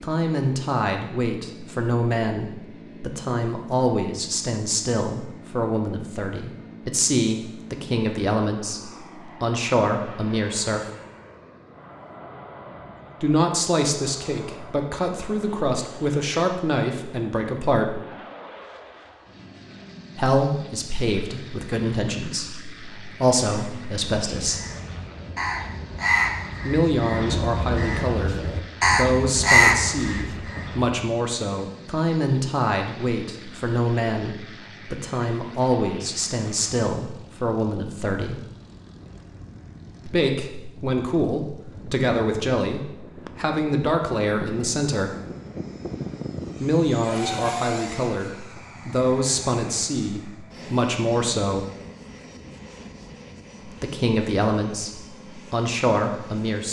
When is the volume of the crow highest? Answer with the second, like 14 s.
30 s.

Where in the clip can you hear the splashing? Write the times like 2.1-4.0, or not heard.
not heard.